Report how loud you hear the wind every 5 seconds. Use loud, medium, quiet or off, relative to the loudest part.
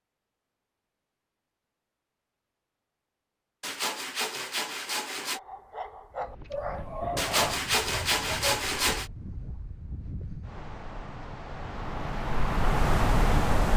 off, quiet, loud.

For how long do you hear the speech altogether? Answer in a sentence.
The speech can't be heard in this clip.